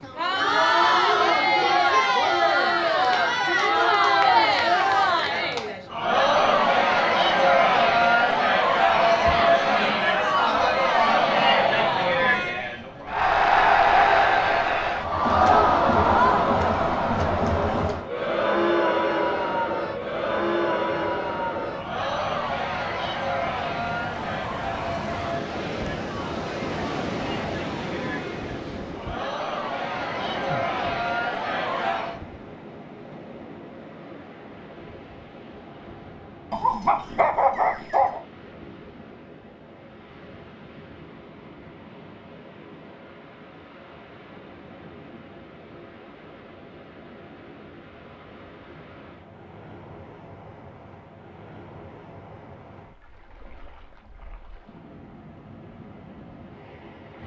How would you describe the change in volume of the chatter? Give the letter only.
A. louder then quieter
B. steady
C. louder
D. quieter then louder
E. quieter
E.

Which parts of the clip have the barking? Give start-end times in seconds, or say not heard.
36.5-38.2.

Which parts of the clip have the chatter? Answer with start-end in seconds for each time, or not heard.
0.0-32.2.